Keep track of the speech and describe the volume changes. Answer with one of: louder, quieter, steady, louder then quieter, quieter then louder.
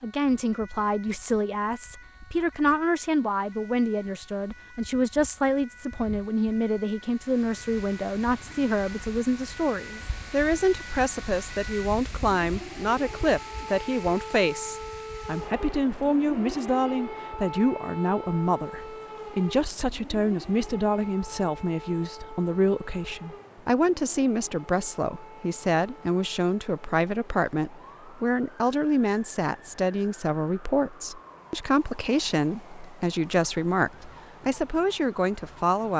steady.